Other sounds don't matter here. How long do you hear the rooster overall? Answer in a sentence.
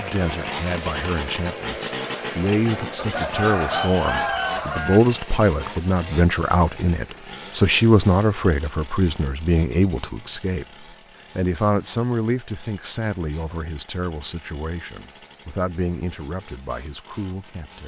The rooster can be heard for 2 seconds in total.